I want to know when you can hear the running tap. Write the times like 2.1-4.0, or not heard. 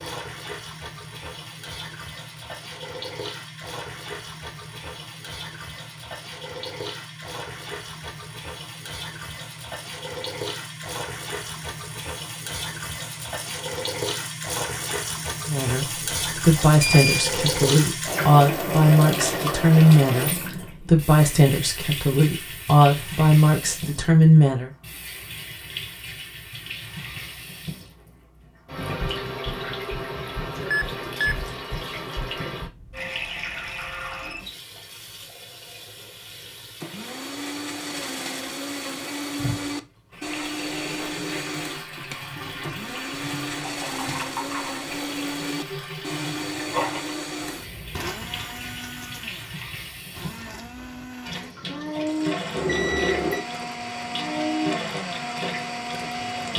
0.0-56.5.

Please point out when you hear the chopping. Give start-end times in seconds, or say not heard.
not heard.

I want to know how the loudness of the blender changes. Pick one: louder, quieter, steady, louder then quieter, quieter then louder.
quieter then louder.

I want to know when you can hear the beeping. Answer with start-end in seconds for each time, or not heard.
16.6-17.3, 30.7-31.4, 52.5-53.5.